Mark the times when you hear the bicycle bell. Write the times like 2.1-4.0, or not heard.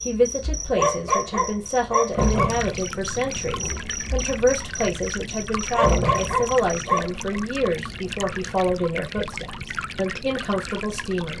not heard.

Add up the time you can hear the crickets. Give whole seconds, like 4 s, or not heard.
7 s.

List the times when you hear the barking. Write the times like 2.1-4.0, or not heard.
0.8-2.6, 5.7-7.4.